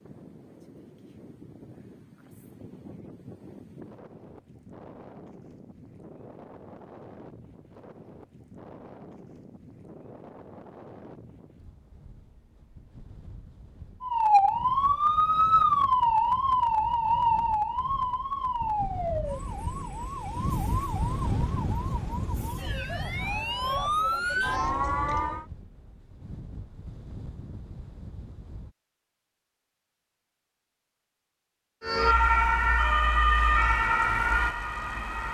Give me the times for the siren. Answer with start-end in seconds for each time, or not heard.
14.0-25.4, 31.8-35.2.